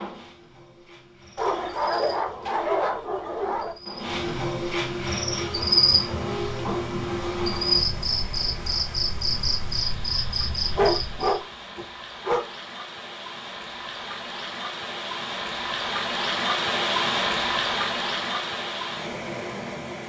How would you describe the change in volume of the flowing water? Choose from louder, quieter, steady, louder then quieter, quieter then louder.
louder.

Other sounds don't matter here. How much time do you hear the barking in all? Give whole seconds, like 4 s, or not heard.
4 s.